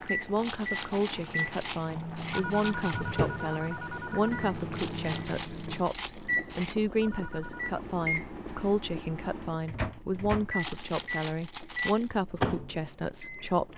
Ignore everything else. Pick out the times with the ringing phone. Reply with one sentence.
The ringing phone can be heard from 2.3 to 4.5 s and from 7.0 to 7.7 s.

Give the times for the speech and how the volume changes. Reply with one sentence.
The speech can be heard from 0.0 to 13.7 s, at a steady volume.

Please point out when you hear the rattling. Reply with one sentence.
The rattling can be heard from 0.3 to 3.0 s, from 4.7 to 6.8 s and from 10.6 to 12.1 s.